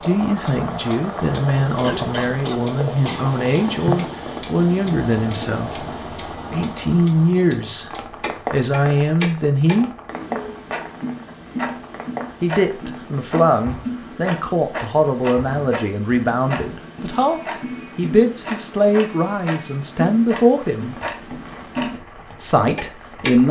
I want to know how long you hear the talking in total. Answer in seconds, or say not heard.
19 s.